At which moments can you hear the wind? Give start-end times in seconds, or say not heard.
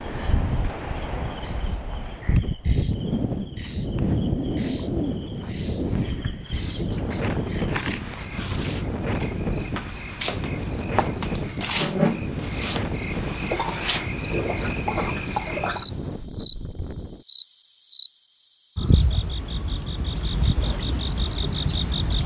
0.0-17.2.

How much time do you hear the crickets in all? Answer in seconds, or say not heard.
22 s.